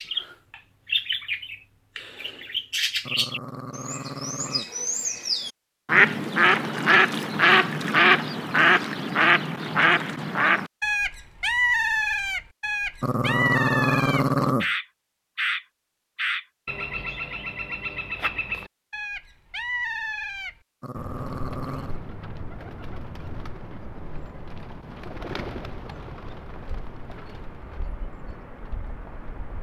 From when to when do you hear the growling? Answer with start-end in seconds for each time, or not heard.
3.0-4.7, 13.0-14.7, 20.8-22.0.